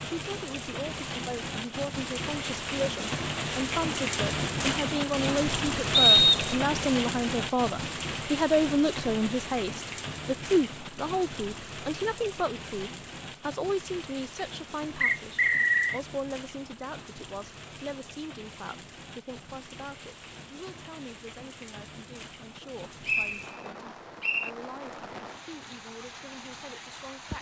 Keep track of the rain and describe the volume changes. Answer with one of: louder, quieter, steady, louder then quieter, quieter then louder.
quieter.